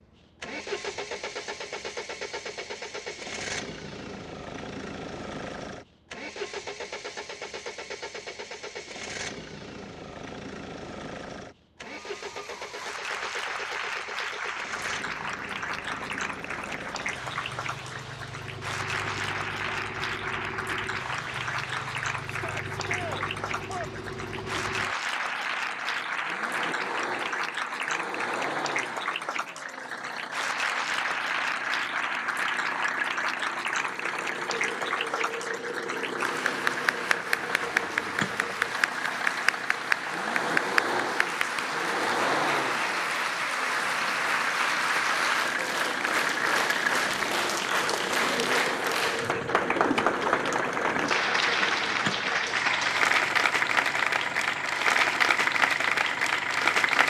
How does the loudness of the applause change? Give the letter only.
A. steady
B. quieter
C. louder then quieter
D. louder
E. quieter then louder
D.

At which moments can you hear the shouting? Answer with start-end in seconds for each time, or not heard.
22.2-23.9.